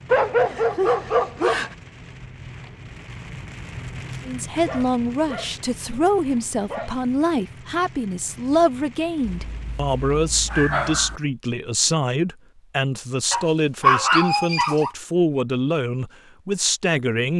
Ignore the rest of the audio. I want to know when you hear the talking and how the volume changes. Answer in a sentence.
You can hear the talking from 4.2 to 17.3 s, at a steady volume.